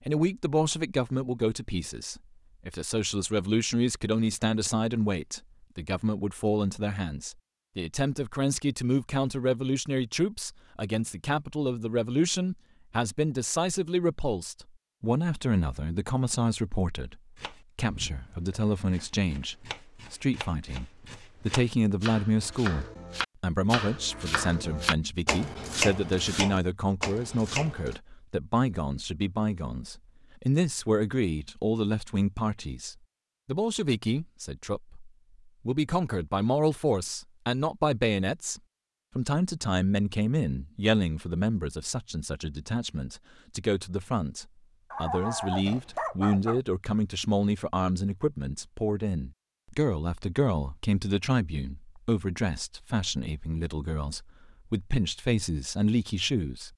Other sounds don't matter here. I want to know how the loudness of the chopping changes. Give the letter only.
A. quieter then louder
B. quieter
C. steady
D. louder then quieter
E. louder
E.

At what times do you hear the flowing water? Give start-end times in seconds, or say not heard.
not heard.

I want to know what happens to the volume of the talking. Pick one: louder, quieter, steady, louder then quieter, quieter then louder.
steady.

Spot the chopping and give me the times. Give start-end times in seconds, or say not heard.
17.4-27.9.